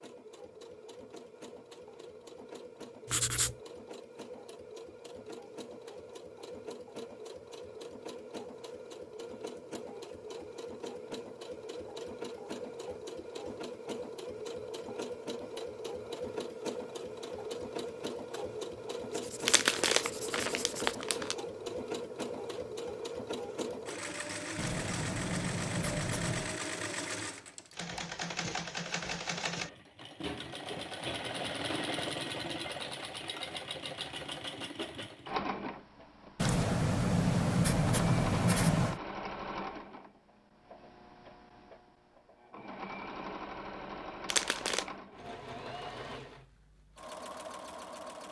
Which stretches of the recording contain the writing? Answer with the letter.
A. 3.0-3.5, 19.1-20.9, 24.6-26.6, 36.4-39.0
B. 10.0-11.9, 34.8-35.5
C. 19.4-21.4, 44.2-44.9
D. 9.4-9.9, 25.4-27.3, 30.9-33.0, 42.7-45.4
A.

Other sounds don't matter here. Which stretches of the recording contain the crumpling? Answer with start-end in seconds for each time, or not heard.
19.4-21.4, 44.2-44.9.